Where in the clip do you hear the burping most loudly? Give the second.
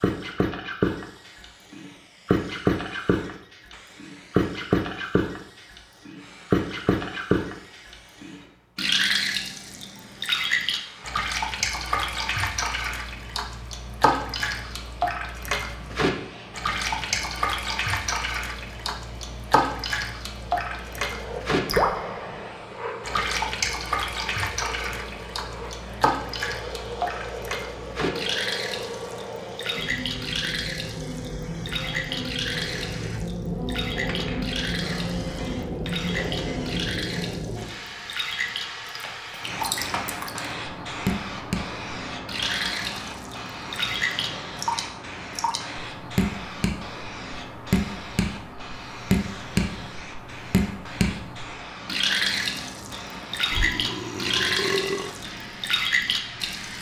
55 s.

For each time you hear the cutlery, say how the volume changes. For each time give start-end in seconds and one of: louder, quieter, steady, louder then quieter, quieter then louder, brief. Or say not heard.
not heard.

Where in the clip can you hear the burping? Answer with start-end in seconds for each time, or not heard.
53.5-55.1.